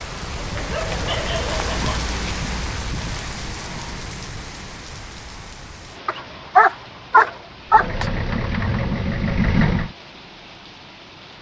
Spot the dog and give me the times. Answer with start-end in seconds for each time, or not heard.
0.6-2.1, 6.0-8.1.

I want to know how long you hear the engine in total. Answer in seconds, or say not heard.
2 s.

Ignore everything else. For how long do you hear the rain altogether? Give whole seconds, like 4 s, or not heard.
11 s.